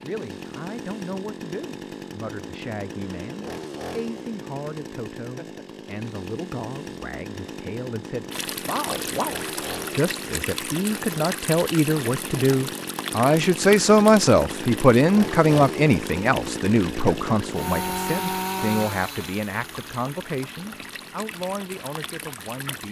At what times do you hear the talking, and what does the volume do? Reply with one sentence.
You can hear the talking from 0.0 to 22.8 s, getting louder then quieter.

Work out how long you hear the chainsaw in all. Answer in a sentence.
You can hear the chainsaw for 23 seconds altogether.